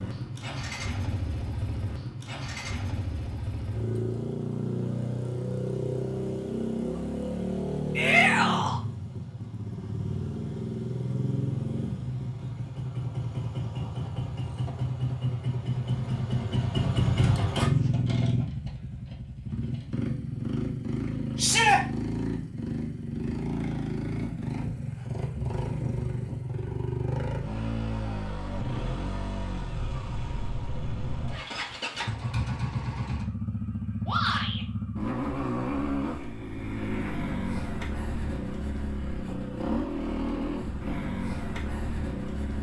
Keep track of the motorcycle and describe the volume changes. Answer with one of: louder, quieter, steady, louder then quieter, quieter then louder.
steady.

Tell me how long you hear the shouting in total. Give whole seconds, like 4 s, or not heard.
2 s.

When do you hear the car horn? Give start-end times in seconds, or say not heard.
not heard.